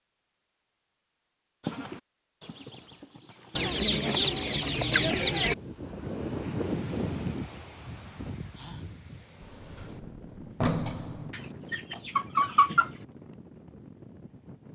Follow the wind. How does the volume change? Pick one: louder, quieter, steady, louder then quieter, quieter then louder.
quieter.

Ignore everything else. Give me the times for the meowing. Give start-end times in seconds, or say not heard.
not heard.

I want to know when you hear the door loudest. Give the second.
11 s.